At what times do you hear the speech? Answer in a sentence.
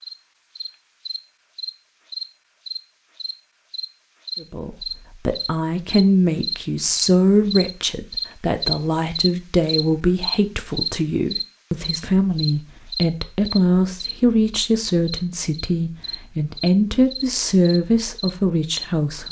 You can hear the speech from 4.4 to 19.2 s.